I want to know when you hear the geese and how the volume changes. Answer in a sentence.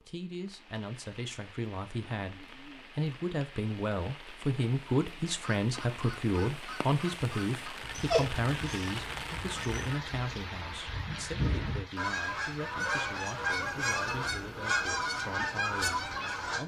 The geese can be heard from 5.4 to 16.6 s, getting louder.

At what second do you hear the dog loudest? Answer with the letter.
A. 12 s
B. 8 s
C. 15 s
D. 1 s
B.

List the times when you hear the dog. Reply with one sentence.
You can hear the dog from 8.0 to 9.8 s.